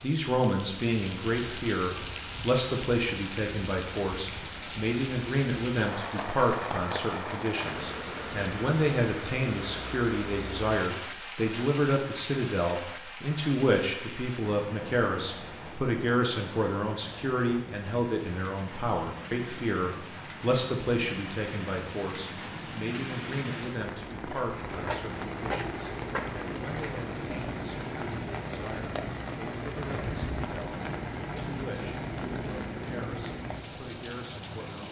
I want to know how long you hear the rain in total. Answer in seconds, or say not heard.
35 s.